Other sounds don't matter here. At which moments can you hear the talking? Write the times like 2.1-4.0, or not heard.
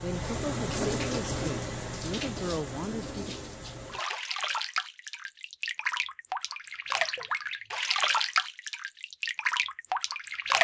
0.0-3.4.